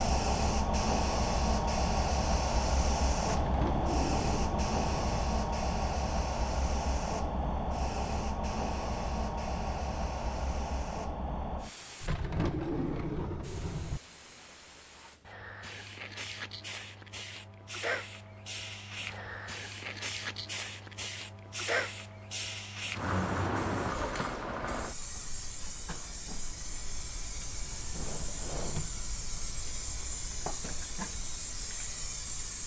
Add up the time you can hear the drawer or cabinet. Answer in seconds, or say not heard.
5 s.